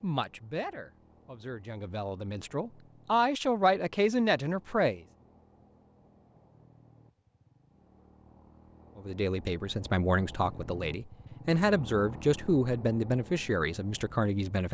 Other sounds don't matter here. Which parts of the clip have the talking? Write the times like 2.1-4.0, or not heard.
0.0-5.0, 8.9-14.6.